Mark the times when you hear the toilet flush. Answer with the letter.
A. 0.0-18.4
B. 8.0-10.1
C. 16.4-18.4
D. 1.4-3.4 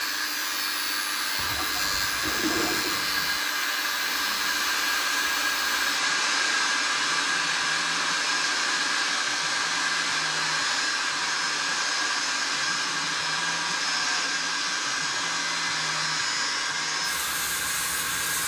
D.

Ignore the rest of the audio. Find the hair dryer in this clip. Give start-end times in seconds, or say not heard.
0.0-18.4.